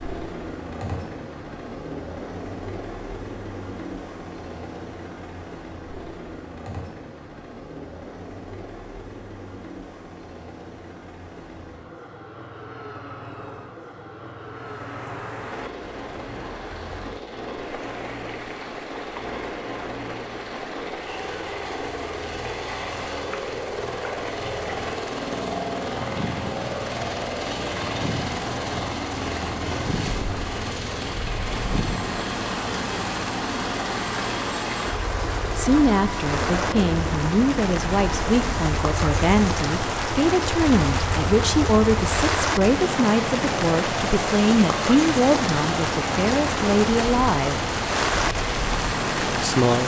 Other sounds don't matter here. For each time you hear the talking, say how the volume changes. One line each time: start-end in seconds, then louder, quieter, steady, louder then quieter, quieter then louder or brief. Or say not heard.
35.5-47.6 steady
49.2-49.8 brief.